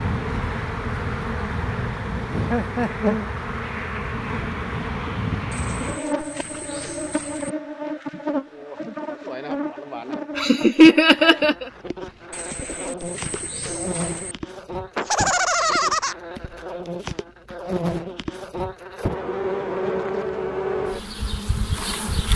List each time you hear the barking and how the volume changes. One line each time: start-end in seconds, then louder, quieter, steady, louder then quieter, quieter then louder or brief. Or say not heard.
not heard.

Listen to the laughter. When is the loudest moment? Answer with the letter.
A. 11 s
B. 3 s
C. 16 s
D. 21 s
A.